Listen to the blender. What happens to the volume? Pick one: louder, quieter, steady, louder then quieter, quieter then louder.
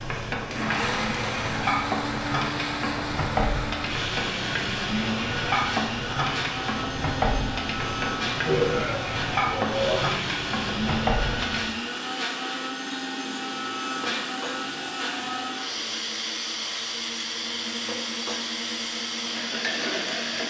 steady.